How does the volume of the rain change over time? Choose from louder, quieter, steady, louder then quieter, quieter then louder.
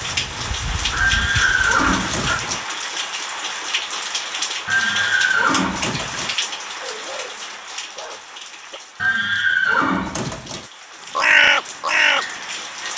quieter.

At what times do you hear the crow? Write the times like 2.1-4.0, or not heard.
0.0-2.5, 11.2-12.9.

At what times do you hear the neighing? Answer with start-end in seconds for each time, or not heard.
0.9-2.6, 4.7-6.3, 9.0-10.7.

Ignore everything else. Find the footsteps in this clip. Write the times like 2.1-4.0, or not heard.
not heard.